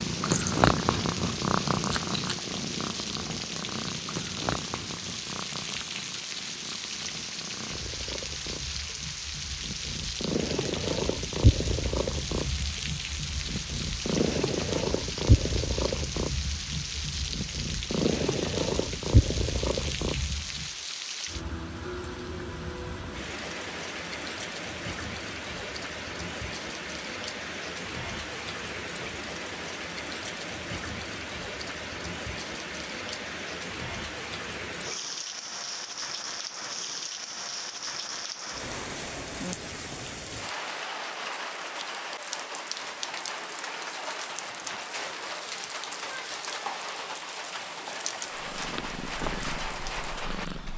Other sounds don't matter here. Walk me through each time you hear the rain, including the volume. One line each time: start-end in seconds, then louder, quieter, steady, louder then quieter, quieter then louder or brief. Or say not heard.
0.0-50.7 steady.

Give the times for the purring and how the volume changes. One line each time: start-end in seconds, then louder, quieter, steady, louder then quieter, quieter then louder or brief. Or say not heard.
0.0-20.7 quieter then louder
48.4-50.7 brief.